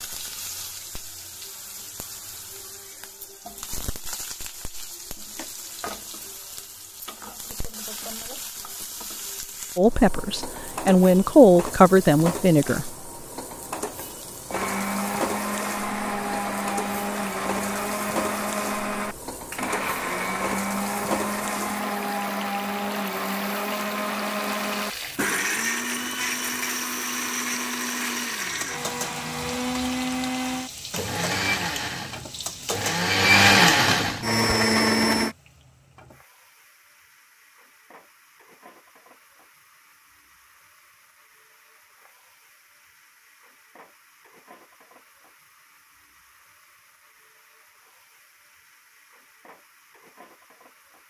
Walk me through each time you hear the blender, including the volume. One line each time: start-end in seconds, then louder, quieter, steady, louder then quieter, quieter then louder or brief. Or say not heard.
14.5-35.4 louder.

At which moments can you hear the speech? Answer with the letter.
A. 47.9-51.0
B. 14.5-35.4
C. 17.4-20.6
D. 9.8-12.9
D.